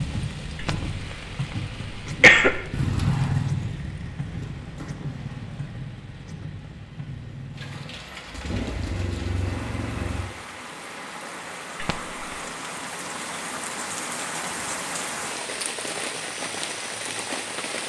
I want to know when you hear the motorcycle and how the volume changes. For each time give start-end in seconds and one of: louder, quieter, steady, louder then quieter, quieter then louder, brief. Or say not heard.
2.7-10.2 quieter then louder.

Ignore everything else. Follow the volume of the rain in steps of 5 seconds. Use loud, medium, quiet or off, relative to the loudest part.
loud, medium, loud, loud.